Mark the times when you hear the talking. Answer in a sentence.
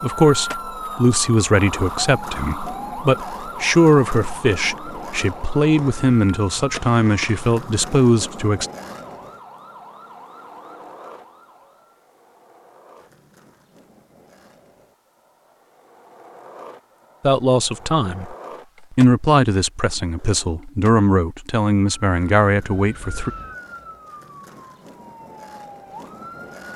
The talking can be heard from 0.0 to 8.7 s, from 17.2 to 18.4 s and from 18.9 to 23.3 s.